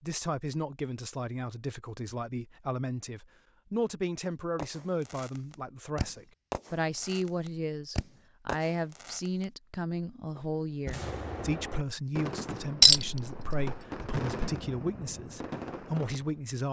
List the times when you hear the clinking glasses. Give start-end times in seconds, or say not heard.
12.8-13.7.